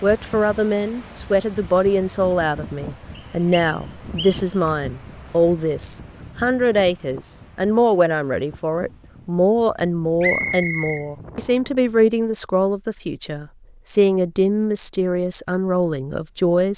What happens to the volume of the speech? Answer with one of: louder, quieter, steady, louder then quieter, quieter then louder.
steady.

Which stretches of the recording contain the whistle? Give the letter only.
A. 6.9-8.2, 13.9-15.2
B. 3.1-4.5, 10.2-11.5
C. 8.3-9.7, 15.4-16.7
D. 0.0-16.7
B.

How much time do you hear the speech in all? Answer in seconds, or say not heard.
17 s.